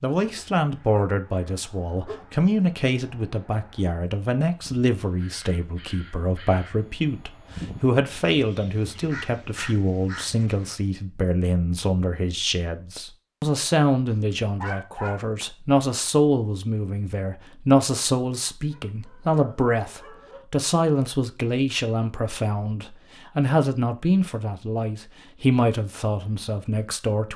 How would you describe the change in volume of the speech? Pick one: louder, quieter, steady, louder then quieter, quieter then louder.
steady.